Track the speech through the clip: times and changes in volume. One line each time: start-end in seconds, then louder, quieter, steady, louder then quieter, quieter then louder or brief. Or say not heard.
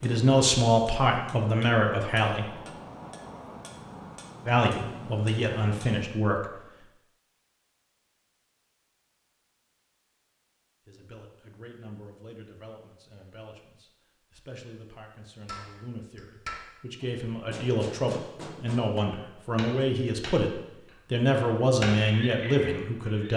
0.0-2.5 brief
4.5-6.5 brief
10.8-23.3 louder.